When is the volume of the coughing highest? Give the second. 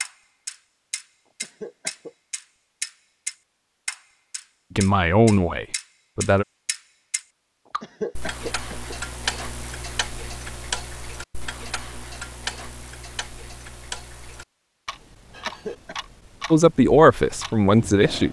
8 s.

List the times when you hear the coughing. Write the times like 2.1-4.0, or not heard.
1.4-2.1, 7.8-8.9, 15.4-15.9.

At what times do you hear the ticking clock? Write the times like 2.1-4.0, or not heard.
0.0-18.2.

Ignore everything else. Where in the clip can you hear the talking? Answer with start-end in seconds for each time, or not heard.
4.8-6.5, 16.5-18.2.